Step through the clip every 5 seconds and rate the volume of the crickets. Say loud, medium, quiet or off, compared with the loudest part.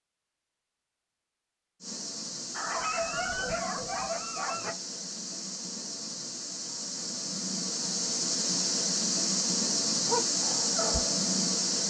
medium, loud, loud.